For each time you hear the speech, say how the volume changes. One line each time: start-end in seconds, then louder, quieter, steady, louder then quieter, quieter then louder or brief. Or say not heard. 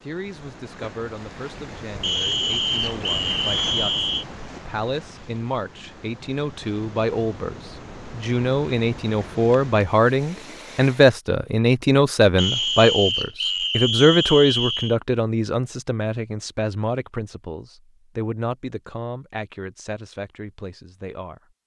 0.0-21.6 louder then quieter.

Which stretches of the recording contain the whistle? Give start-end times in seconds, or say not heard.
2.0-4.2, 12.3-14.9.